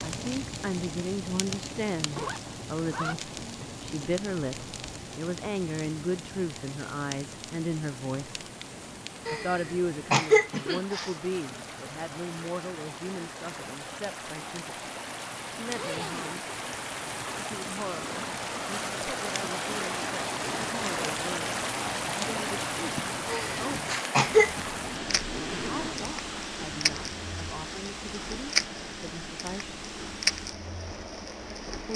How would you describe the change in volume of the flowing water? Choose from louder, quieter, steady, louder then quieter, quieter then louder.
louder then quieter.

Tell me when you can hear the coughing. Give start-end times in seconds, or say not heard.
9.2-11.1, 23.3-24.6.